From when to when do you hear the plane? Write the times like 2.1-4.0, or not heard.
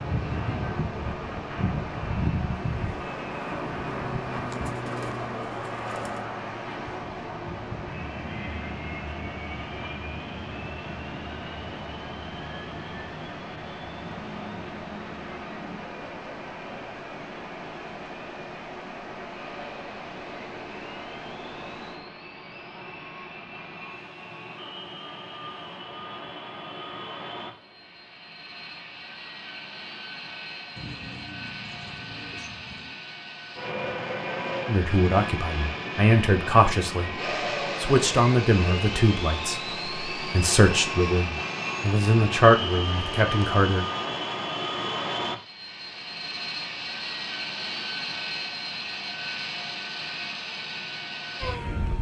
0.0-51.9.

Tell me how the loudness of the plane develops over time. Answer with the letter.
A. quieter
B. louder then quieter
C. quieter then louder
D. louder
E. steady
C.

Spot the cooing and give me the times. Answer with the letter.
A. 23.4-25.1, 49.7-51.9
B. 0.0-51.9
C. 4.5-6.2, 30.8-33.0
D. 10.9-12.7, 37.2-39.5
C.